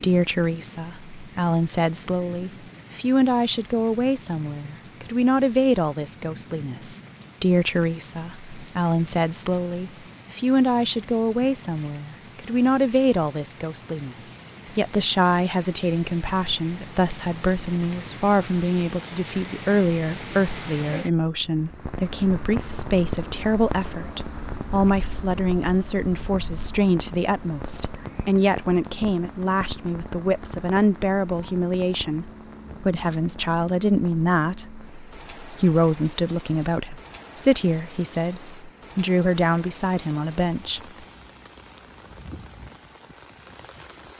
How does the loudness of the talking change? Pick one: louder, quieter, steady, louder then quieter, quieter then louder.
steady.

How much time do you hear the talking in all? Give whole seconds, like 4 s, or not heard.
41 s.